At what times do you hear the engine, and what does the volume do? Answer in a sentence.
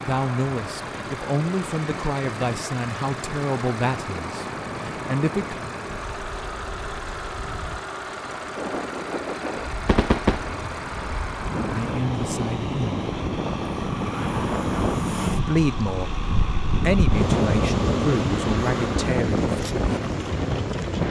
The engine can be heard from 0.0 to 21.0 s, at a steady volume.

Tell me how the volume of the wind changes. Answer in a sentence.
The loudness of the wind goes up.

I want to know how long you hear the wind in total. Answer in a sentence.
You can hear the wind for 21 seconds altogether.